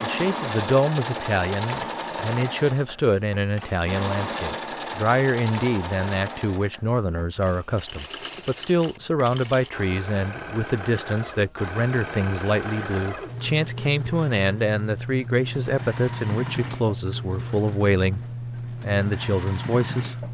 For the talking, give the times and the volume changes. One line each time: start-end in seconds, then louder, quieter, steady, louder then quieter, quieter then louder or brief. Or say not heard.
0.0-18.2 steady
18.8-20.2 brief.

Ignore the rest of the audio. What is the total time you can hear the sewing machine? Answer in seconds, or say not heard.
20 s.